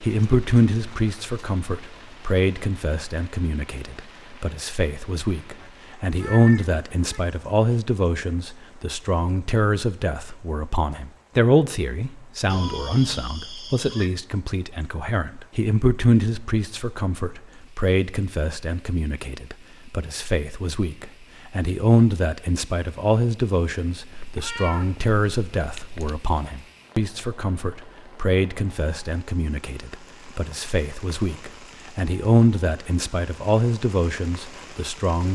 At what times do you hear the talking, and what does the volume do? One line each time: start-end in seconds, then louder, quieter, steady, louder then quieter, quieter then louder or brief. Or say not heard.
0.0-35.2 steady.